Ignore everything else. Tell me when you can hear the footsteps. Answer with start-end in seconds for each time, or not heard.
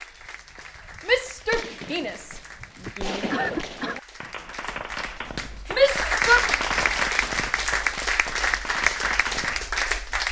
not heard.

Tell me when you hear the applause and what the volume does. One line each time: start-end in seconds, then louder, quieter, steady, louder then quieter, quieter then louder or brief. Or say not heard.
0.0-10.2 louder.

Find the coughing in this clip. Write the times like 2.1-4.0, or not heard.
2.9-4.0.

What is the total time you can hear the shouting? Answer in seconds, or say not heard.
3 s.